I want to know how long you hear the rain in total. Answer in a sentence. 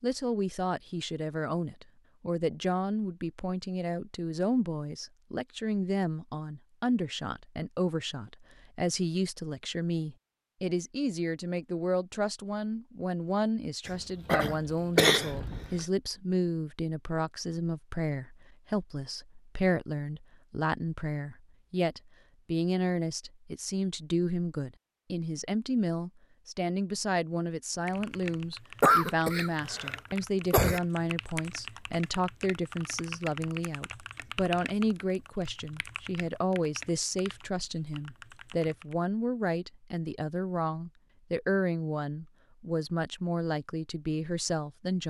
The rain can't be heard in this clip.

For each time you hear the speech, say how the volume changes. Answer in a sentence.
The speech can be heard from 0.0 to 45.0 s, at a steady volume.